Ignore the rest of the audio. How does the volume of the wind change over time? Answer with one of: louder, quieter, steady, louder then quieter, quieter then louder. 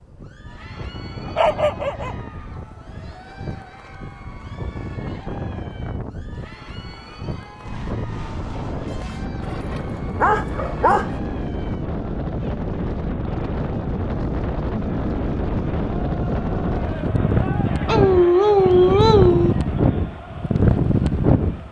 louder.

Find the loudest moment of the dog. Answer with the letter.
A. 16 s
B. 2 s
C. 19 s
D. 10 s
C.